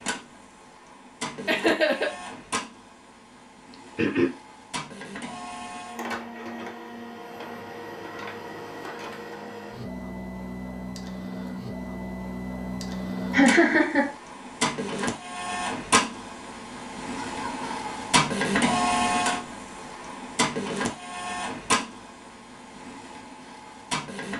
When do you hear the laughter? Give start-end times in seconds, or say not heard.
1.4-2.1, 13.3-14.1, 17.2-17.9.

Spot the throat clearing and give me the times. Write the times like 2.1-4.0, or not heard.
3.7-4.3.